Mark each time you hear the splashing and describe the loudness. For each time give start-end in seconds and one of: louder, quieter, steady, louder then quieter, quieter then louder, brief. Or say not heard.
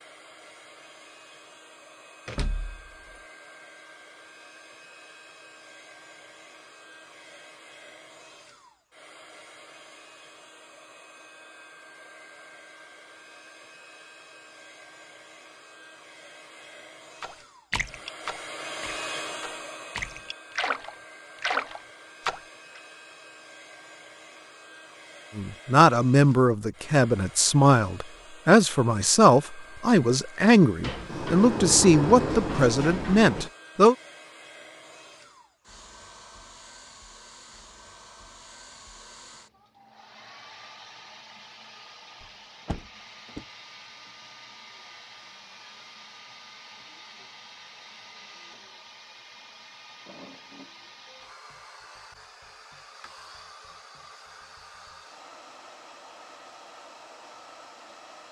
17.2-22.8 quieter then louder.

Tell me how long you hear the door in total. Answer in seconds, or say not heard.
5 s.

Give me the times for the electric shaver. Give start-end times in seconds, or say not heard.
not heard.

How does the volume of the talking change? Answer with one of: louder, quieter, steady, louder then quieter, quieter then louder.
steady.